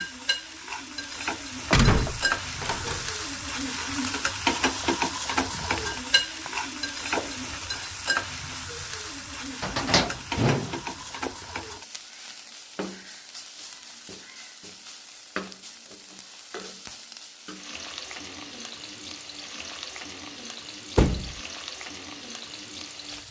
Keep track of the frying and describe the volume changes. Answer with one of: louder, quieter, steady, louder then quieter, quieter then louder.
quieter.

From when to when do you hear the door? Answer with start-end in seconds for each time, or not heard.
1.7-3.0, 9.6-11.3, 20.9-21.4.